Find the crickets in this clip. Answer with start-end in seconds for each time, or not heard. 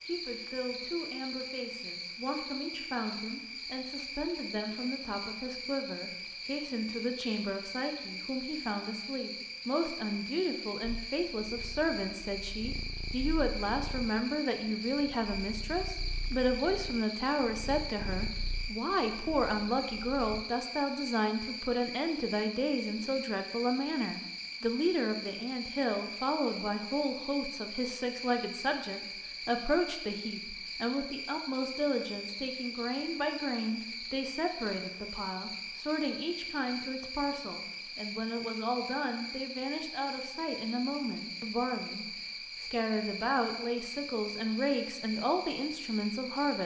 0.0-46.6.